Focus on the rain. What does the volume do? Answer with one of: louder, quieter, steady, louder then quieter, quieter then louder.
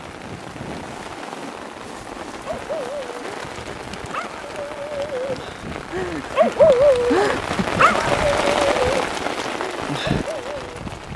louder.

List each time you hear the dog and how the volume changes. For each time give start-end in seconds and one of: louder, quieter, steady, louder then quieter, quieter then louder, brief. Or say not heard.
2.1-10.7 louder then quieter.